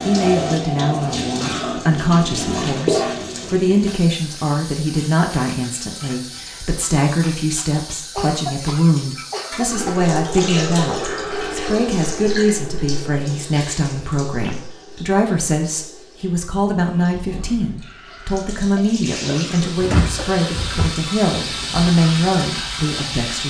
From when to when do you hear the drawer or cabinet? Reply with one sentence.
You can hear the drawer or cabinet from 19.8 to 20.9 s.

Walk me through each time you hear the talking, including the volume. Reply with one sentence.
The talking can be heard from 0.1 to 23.4 s, at a steady volume.